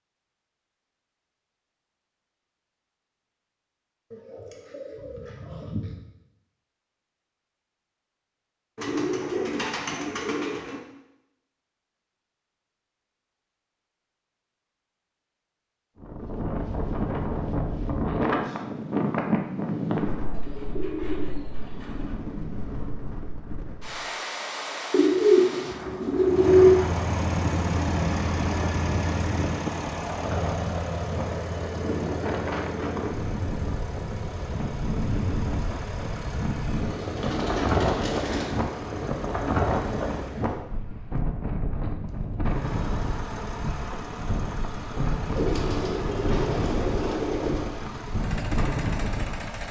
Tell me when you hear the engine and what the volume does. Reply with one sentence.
You can hear the engine from 26.2 to 40.5 s, getting quieter; and from 42.5 to 49.6 s, at a steady volume.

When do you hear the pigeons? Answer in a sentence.
The pigeons can be heard from 4.1 to 6.0 s, from 8.8 to 10.8 s, from 20.3 to 22.1 s, from 24.9 to 26.9 s, from 36.8 to 38.6 s and from 45.4 to 47.7 s.